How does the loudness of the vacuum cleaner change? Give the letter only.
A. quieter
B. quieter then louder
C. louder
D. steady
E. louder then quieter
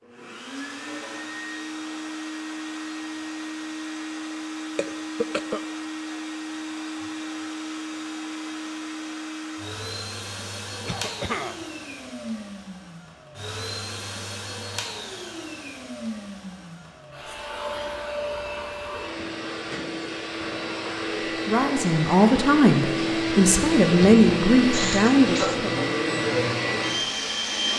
C.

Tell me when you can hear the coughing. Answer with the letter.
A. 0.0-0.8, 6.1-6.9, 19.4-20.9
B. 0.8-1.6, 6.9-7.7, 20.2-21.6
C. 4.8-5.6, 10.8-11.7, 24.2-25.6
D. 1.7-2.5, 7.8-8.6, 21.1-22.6
C.